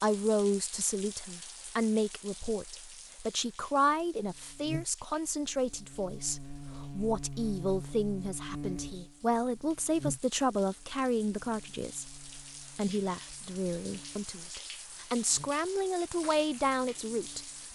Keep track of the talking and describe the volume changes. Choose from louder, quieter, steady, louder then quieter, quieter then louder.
steady.